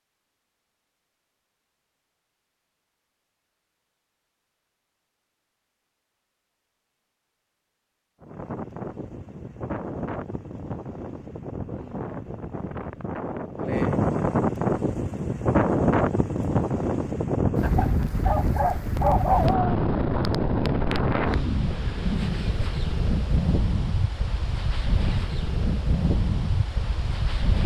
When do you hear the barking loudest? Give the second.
19 s.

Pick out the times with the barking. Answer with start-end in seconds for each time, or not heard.
17.8-19.7.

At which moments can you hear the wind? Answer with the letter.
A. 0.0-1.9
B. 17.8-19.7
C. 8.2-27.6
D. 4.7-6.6
C.